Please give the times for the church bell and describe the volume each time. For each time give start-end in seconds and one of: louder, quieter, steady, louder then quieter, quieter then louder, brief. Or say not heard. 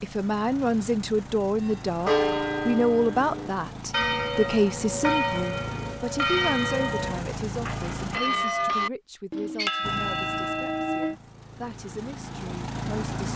1.6-11.2 steady.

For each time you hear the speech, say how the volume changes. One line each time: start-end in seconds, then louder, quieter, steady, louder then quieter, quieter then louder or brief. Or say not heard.
0.0-13.3 quieter.